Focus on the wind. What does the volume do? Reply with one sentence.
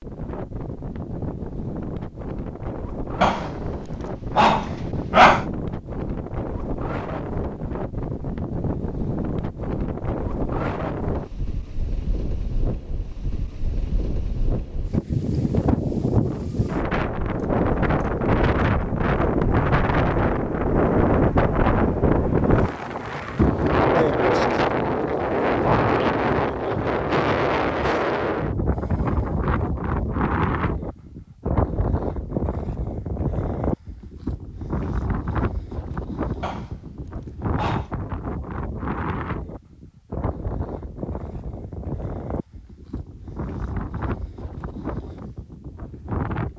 The volume of the wind goes up, then down.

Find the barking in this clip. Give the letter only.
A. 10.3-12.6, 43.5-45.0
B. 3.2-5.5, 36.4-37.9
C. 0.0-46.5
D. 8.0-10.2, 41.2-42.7
B.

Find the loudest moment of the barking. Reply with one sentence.
The volume of the barking peaks at 5 seconds.